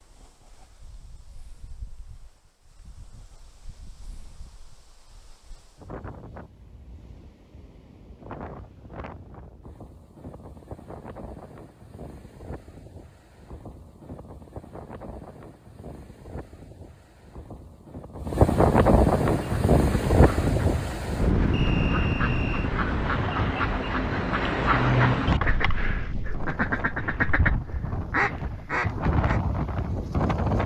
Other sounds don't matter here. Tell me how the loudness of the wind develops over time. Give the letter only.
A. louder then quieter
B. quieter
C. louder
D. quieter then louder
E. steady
A.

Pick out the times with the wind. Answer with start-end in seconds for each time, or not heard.
0.0-30.6.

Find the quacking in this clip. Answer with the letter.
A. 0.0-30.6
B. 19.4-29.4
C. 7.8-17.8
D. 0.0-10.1
B.